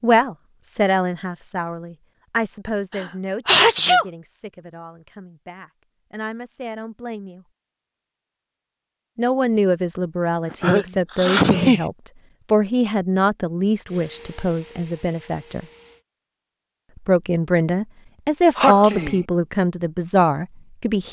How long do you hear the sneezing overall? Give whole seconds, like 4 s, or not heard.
3 s.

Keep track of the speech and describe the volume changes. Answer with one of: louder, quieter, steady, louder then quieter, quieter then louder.
quieter then louder.